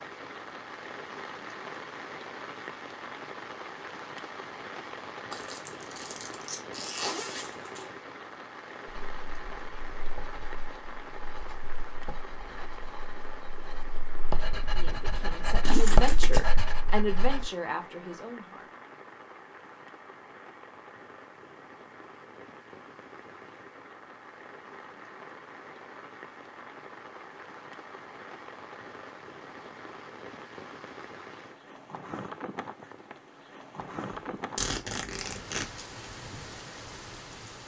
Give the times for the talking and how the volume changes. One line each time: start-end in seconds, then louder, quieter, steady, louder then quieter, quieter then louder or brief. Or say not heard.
14.7-18.7 louder then quieter.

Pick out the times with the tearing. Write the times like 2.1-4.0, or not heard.
5.3-6.7.